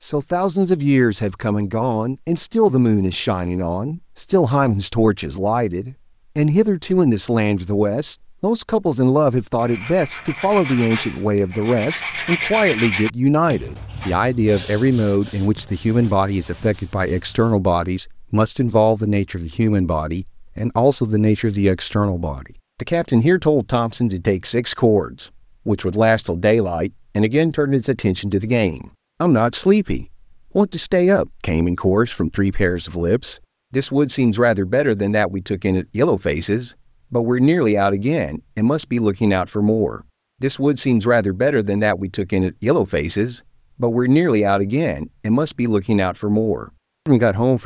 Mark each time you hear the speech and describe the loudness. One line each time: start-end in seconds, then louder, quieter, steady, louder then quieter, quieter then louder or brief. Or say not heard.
0.0-47.6 steady.